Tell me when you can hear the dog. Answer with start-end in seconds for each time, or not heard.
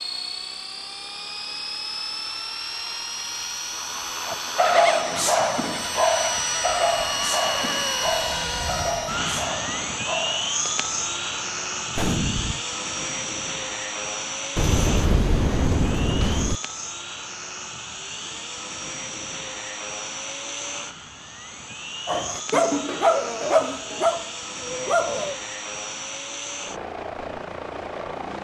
4.2-10.5, 22.1-25.4.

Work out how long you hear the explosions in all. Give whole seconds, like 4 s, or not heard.
3 s.